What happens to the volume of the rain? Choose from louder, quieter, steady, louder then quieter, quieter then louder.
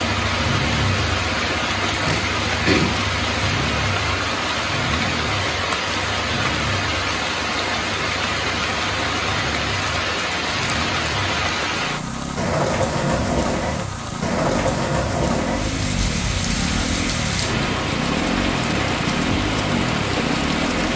steady.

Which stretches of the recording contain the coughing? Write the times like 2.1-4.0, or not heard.
1.4-3.0.